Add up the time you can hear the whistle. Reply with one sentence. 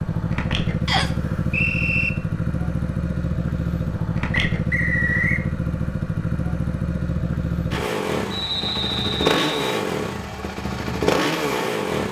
You can hear the whistle for 4 seconds altogether.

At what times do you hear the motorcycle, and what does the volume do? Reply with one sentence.
The motorcycle can be heard from 0.0 to 12.0 s, at a steady volume.